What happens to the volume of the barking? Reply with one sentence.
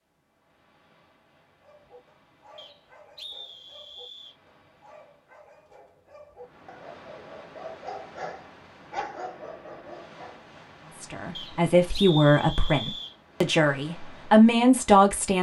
The loudness of the barking goes up.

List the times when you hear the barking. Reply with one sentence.
You can hear the barking from 1.5 to 10.4 s.